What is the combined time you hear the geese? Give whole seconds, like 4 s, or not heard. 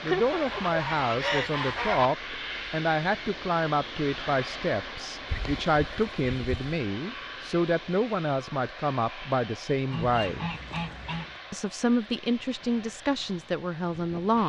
5 s.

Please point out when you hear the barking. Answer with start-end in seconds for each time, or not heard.
not heard.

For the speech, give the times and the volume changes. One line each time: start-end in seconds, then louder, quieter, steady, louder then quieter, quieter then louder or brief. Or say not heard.
0.0-10.5 steady
11.5-14.4 brief.